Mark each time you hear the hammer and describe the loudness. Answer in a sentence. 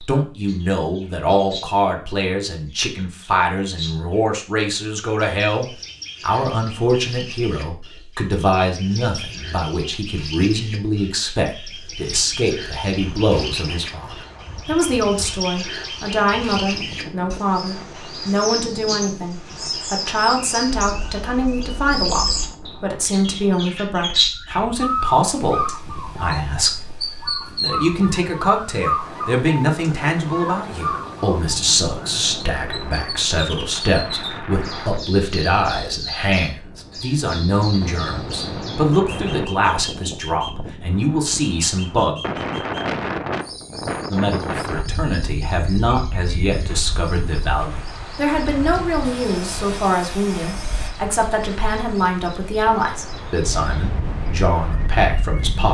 You can't hear the hammer here.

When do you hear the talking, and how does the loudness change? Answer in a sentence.
You can hear the talking from 0.0 to 42.2 s, at a steady volume; and from 44.0 to 55.6 s, at a steady volume.